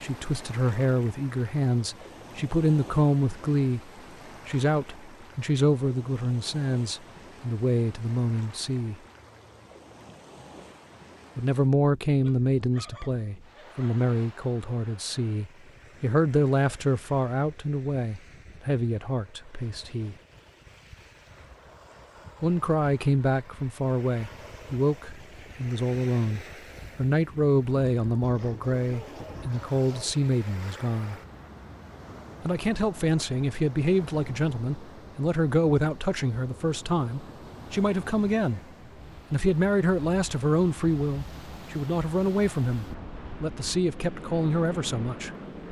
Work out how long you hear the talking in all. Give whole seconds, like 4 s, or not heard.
39 s.